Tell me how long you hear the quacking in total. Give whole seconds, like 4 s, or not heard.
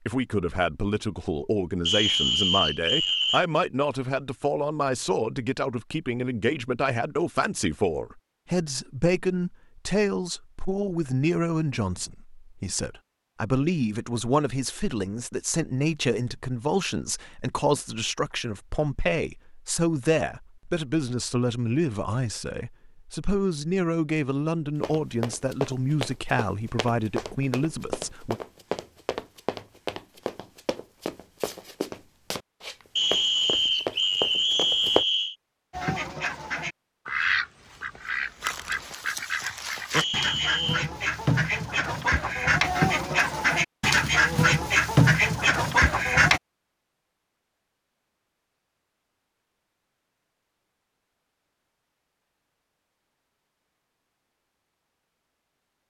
11 s.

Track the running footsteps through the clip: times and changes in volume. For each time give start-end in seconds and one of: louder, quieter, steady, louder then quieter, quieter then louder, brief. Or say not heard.
24.8-35.0 steady.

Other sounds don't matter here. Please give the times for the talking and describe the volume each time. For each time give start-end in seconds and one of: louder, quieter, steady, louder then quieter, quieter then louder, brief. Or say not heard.
0.1-28.4 steady.